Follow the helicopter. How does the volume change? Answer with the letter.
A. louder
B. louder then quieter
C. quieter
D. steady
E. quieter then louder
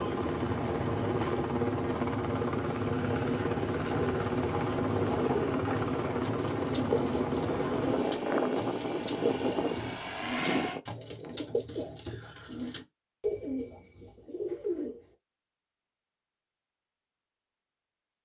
D.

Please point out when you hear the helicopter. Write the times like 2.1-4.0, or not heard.
0.0-10.8.